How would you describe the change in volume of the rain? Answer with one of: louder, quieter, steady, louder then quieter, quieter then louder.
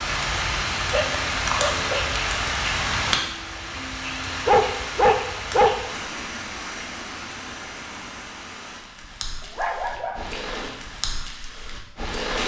quieter.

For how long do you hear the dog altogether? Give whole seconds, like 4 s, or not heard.
4 s.